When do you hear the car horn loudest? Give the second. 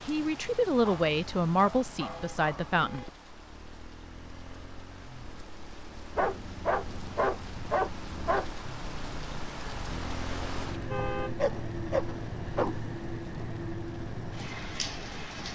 11 s.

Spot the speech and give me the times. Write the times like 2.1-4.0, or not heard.
0.1-3.0.